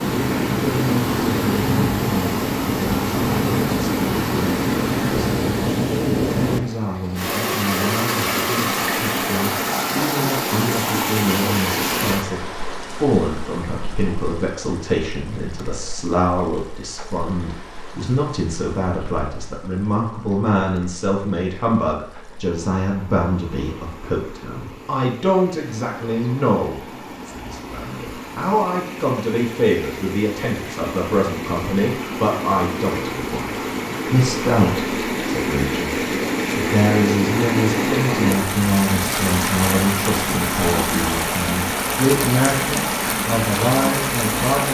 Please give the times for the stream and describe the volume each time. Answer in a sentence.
The stream can be heard from 0.0 to 44.7 s, getting quieter then louder.